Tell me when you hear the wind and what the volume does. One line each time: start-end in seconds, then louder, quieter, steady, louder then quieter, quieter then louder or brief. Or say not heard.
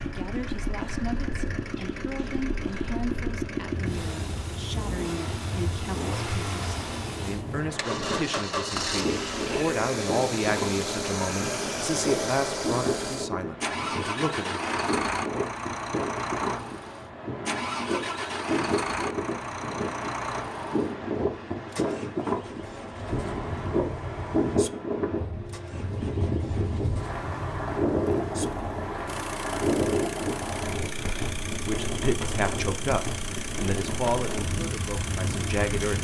0.2-35.9 louder.